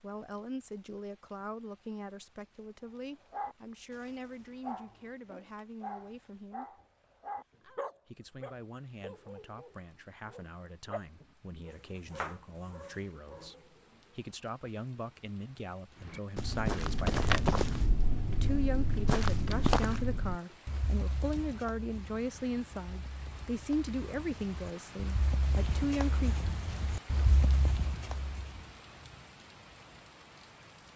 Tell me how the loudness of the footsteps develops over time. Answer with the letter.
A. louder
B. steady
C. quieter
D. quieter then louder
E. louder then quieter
D.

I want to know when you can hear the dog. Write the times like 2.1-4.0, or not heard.
3.3-14.2.